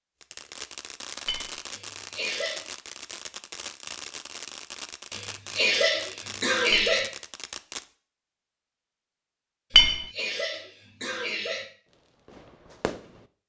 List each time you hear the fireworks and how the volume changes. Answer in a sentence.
You can hear the fireworks from 0.2 to 7.8 s, at a steady volume; and briefly from 11.8 to 13.3 s.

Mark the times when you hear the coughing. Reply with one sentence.
You can hear the coughing from 1.7 to 2.6 s, from 5.1 to 7.0 s and from 9.7 to 11.7 s.